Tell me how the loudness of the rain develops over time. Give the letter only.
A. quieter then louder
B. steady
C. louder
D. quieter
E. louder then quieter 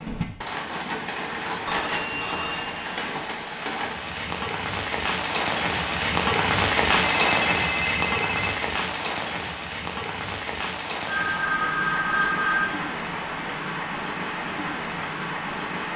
E.